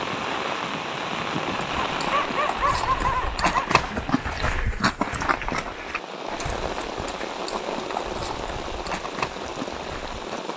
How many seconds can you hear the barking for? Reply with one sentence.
You can hear the barking for 2 seconds altogether.